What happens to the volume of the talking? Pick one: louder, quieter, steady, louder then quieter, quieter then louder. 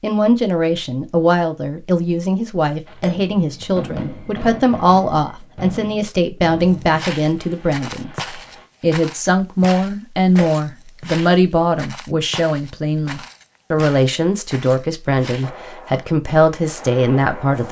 steady.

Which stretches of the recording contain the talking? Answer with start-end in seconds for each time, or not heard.
0.0-8.2, 8.8-17.6.